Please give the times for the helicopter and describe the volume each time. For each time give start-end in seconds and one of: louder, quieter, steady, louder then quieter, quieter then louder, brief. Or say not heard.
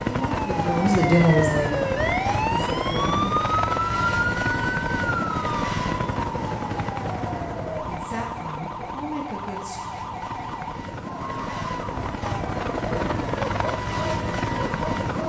0.0-15.2 quieter then louder.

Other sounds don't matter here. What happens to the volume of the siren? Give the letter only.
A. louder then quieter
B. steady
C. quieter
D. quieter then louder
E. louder
C.